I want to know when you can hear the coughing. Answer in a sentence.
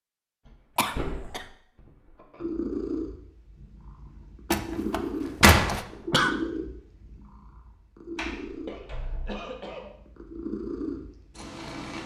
The coughing can be heard from 0.8 to 1.4 s, from 5.8 to 6.3 s and from 8.7 to 9.9 s.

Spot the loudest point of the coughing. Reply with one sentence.
The volume of the coughing peaks at 6 seconds.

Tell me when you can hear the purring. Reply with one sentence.
You can hear the purring from 2.4 to 12.0 s.